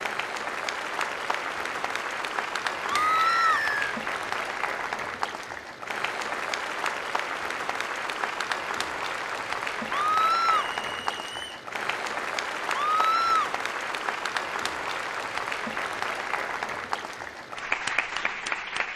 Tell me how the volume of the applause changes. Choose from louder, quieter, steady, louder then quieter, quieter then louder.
steady.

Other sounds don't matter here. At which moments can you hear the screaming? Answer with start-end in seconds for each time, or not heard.
2.9-3.6, 9.9-10.7, 12.7-13.6.